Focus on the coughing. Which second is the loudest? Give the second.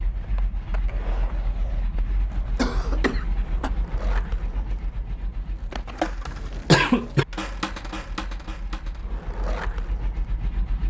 7 s.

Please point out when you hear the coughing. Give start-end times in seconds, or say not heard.
2.5-3.7, 6.2-7.2.